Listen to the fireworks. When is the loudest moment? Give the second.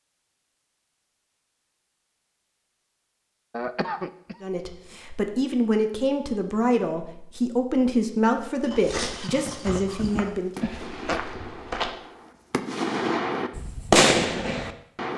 14 s.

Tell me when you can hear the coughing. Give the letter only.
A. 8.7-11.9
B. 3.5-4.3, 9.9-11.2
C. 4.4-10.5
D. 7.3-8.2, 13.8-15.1
B.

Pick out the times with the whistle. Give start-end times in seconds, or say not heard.
not heard.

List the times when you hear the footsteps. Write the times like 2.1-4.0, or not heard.
8.7-11.9.